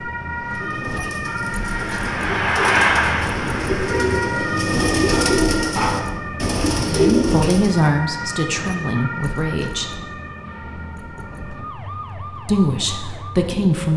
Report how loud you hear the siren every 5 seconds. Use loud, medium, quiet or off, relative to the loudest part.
loud, loud, medium.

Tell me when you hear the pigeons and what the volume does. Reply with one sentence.
The pigeons can be heard from 0.6 to 7.9 s, getting louder.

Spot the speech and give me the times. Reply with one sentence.
The speech can be heard from 6.8 to 10.0 s and from 12.4 to 13.9 s.